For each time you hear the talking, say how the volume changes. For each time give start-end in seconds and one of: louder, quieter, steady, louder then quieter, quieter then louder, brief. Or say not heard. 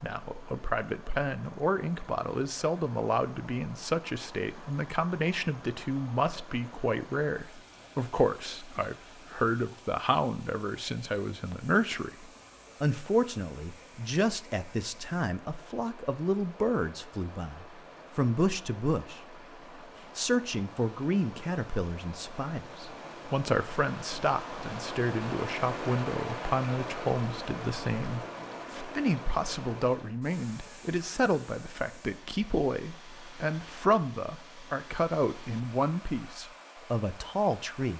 0.0-19.4 steady
20.1-37.9 steady.